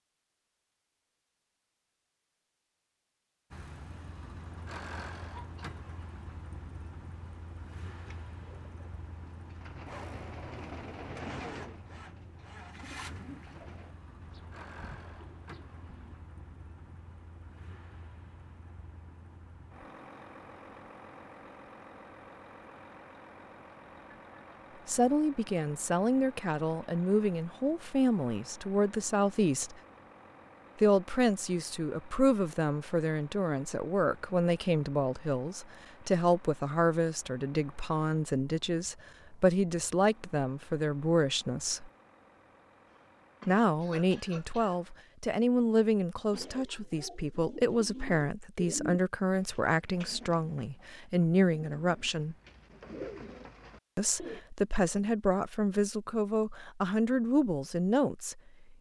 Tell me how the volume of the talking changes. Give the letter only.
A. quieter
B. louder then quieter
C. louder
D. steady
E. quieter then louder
D.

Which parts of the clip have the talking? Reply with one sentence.
You can hear the talking from 24.9 to 29.8 s, from 30.8 to 41.9 s, from 43.5 to 52.4 s and from 54.0 to 58.4 s.